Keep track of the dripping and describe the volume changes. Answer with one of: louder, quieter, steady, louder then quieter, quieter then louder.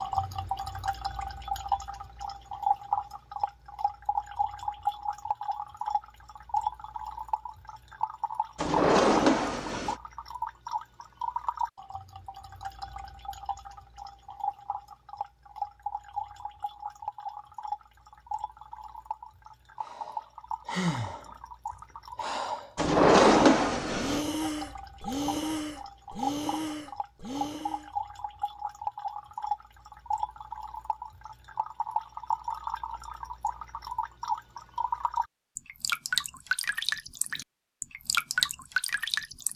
quieter then louder.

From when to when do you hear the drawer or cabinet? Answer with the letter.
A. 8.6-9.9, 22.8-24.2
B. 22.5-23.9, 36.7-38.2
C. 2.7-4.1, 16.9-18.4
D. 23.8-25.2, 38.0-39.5
A.